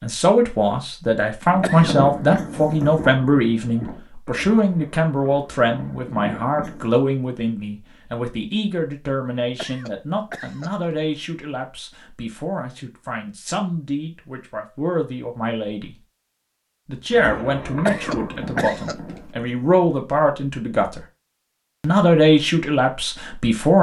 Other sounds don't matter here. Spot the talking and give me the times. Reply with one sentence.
The talking can be heard from 0.0 to 15.9 s, from 16.9 to 21.0 s and from 21.8 to 23.7 s.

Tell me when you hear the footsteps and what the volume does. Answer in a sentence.
You can't hear the footsteps here.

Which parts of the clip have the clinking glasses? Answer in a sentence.
The clinking glasses can't be heard in this clip.